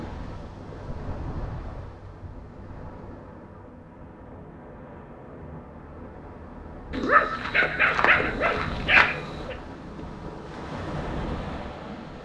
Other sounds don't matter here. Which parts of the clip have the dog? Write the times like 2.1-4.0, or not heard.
6.9-9.6.